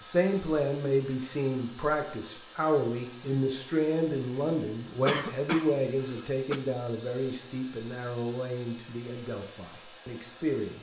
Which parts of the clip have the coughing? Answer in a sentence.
You can hear the coughing from 5.0 to 6.6 s.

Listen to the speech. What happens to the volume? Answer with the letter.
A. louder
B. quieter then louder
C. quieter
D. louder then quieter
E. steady
C.